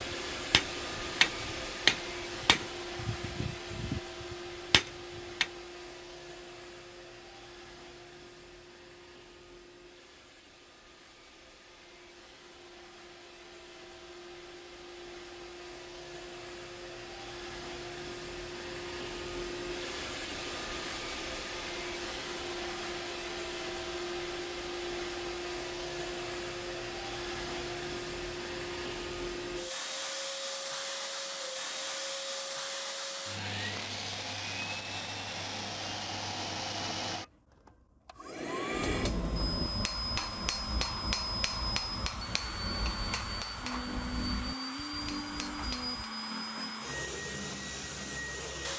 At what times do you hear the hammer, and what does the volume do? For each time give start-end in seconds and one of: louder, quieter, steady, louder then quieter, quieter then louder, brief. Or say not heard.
0.0-5.5 quieter then louder
38.7-46.1 quieter.